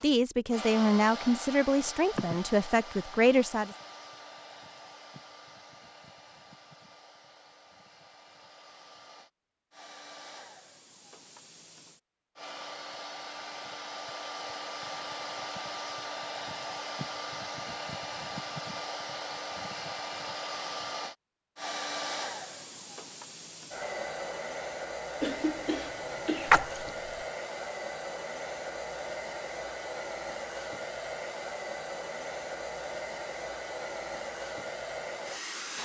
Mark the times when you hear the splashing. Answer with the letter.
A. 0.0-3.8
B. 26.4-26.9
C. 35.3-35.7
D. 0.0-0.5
B.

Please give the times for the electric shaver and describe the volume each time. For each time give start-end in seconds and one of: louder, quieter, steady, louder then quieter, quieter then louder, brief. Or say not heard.
not heard.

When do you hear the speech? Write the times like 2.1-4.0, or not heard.
0.0-3.8.